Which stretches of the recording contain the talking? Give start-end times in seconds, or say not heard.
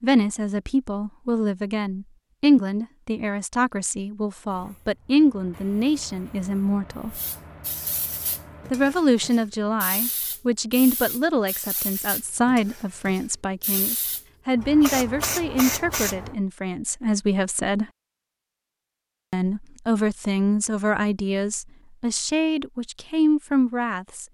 0.0-7.2, 8.7-17.9, 19.3-24.2.